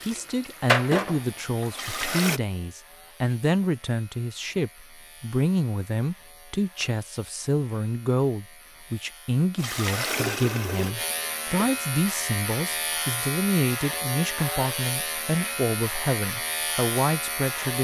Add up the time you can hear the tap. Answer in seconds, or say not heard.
5 s.